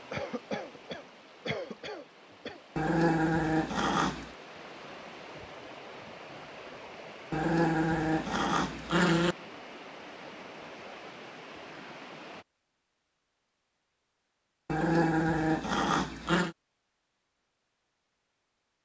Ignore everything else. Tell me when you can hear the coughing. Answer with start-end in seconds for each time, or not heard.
0.1-2.6.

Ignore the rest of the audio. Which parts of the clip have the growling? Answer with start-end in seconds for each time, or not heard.
2.8-4.3, 7.3-9.3, 14.7-16.6.